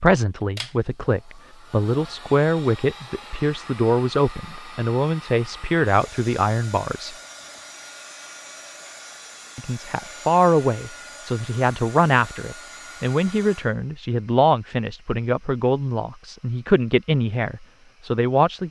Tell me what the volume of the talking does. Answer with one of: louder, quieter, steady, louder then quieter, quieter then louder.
steady.